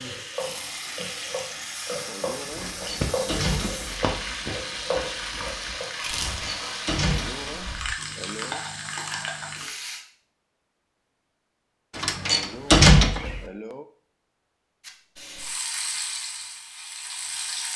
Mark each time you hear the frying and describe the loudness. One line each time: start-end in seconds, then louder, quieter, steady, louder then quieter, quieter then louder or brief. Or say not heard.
0.0-10.1 steady
14.8-17.7 brief.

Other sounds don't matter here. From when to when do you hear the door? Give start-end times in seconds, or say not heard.
2.5-4.0, 6.1-7.5, 11.9-13.4.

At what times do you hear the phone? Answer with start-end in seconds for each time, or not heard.
not heard.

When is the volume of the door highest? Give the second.
13 s.